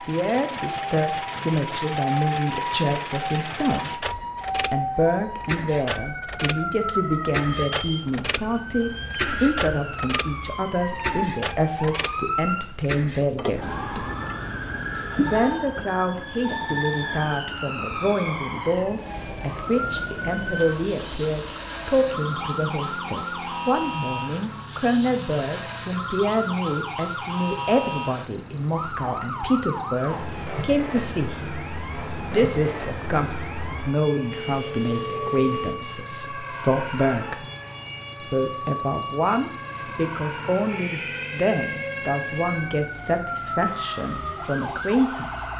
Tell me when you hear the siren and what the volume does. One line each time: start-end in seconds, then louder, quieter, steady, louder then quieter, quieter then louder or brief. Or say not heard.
0.0-45.5 steady.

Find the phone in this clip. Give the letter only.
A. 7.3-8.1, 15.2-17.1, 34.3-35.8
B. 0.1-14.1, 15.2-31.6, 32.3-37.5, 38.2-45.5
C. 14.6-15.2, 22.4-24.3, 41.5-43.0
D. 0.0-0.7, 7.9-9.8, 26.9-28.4
A.